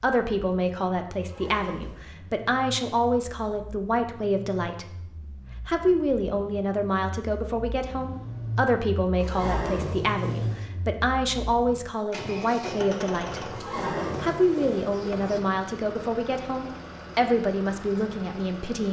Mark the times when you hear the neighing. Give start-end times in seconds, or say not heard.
1.2-2.0, 9.2-10.7, 13.5-15.4.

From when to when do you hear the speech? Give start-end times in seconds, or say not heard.
0.0-5.0, 5.7-13.6, 14.2-18.8.